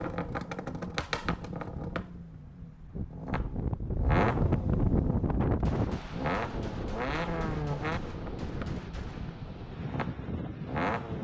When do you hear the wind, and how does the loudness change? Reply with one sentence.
The wind can be heard from 0.0 to 11.1 s, getting louder then quieter.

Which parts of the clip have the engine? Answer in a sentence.
The engine can be heard from 0.0 to 11.1 s.